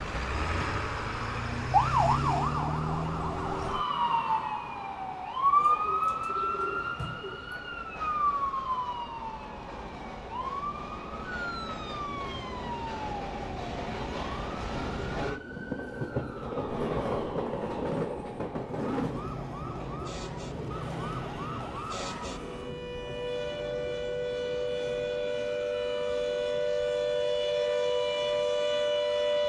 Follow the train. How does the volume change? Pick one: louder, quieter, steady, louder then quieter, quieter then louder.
louder then quieter.